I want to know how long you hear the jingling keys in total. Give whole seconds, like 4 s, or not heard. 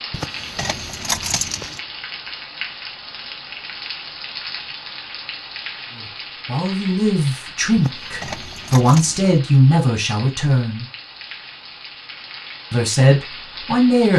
3 s.